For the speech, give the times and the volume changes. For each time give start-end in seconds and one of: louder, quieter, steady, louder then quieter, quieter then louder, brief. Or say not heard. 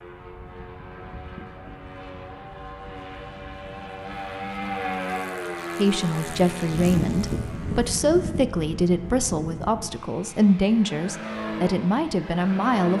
5.8-12.9 steady.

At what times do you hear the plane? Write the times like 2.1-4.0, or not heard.
0.0-12.9.